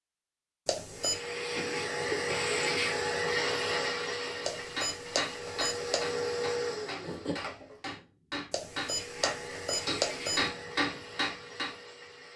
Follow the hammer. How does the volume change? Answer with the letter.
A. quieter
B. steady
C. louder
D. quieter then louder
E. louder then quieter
D.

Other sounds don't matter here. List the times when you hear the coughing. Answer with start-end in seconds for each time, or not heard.
1.6-2.2, 7.0-7.8.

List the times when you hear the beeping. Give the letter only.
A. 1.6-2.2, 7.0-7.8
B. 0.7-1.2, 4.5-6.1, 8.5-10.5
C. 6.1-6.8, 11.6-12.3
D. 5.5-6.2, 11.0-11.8
B.